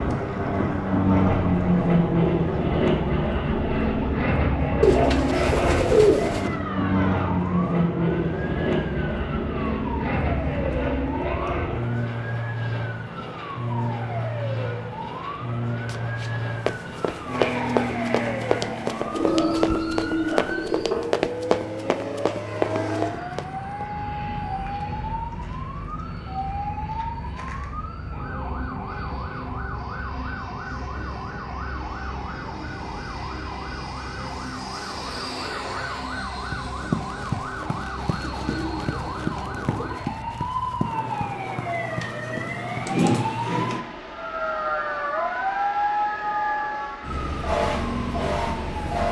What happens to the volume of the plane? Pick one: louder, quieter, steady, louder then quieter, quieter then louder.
quieter.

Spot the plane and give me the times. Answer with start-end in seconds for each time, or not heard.
0.0-49.0.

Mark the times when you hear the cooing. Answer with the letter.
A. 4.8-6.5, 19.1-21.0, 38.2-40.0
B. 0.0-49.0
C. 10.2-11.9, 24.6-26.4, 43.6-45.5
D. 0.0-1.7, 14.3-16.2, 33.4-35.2
A.